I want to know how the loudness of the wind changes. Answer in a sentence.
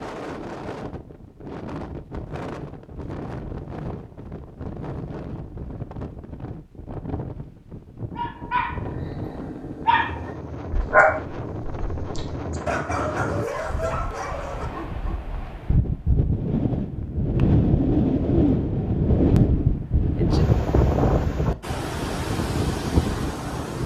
The volume of the wind goes up.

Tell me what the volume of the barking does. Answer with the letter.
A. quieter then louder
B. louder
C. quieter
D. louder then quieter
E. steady
D.